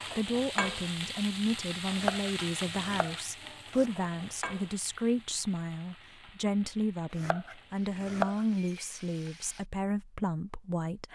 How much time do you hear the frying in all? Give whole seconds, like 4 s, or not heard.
10 s.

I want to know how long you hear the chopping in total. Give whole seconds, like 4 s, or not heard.
3 s.